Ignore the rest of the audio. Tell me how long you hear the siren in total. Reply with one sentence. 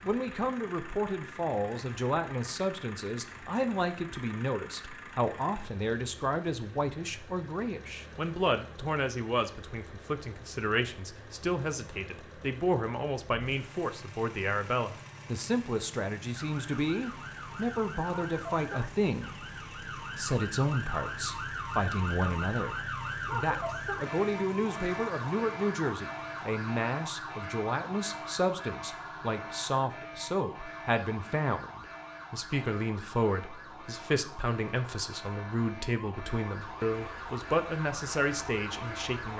You can hear the siren for 23 seconds altogether.